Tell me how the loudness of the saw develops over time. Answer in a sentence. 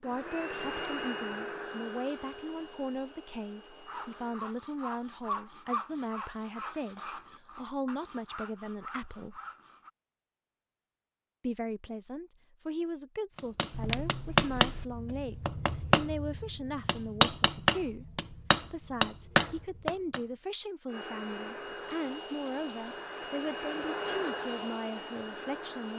The loudness of the saw goes up, then down.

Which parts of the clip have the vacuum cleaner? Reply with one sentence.
You can hear the vacuum cleaner from 0.0 to 4.5 s and from 20.9 to 25.9 s.